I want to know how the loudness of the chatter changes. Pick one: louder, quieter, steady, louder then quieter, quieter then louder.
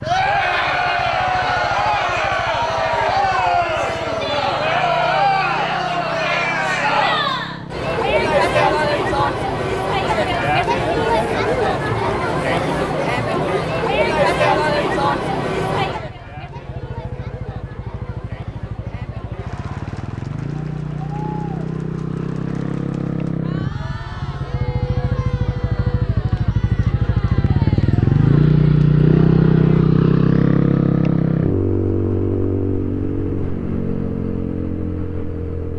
quieter.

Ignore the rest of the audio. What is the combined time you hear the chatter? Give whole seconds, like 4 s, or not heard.
30 s.